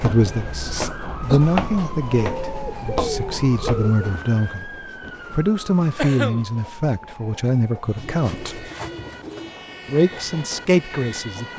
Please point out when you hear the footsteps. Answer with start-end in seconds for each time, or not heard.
0.0-4.2.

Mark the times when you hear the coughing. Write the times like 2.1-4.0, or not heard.
0.1-1.4, 6.0-6.5.